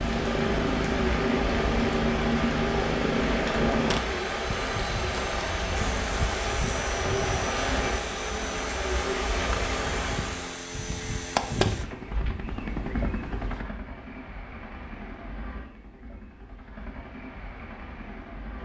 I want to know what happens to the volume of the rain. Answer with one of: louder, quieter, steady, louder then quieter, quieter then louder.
steady.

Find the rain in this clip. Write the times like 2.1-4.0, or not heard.
0.0-10.6.